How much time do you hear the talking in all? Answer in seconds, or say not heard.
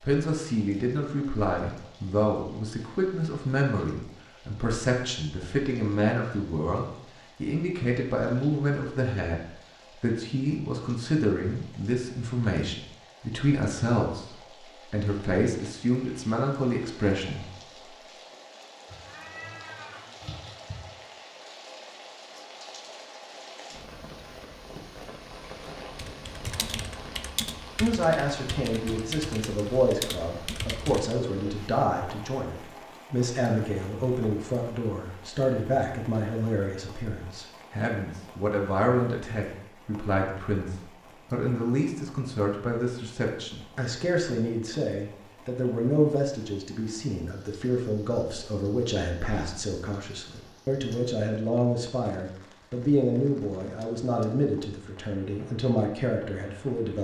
47 s.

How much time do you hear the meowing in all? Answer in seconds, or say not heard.
2 s.